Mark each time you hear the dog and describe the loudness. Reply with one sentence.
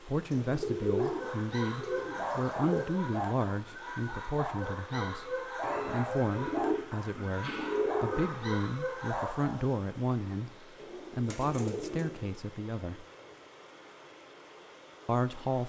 The dog can be heard from 0.8 to 9.8 s, at a steady volume.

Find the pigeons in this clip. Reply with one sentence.
You can hear the pigeons from 0.3 to 2.8 s, from 5.6 to 8.6 s and from 10.8 to 12.3 s.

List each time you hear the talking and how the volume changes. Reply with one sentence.
The talking can be heard from 0.0 to 10.5 s, at a steady volume; briefly from 11.1 to 13.1 s; and briefly from 15.1 to 15.6 s.